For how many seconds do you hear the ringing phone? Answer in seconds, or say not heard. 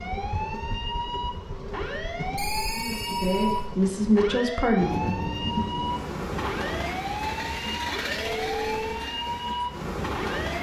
2 s.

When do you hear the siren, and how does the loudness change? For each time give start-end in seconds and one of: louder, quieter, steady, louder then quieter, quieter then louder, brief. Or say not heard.
0.0-10.5 steady.